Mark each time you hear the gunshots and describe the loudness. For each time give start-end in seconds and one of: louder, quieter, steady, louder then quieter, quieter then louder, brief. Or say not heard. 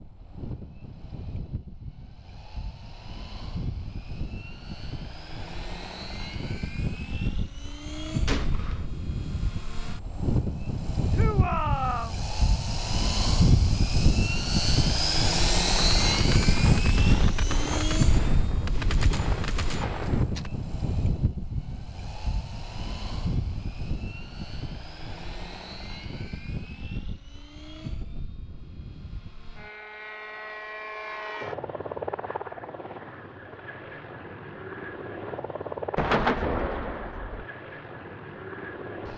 8.2-8.8 brief
15.7-20.5 steady
36.0-37.5 brief.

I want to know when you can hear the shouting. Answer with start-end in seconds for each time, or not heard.
11.1-12.2.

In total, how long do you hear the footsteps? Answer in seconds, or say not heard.
not heard.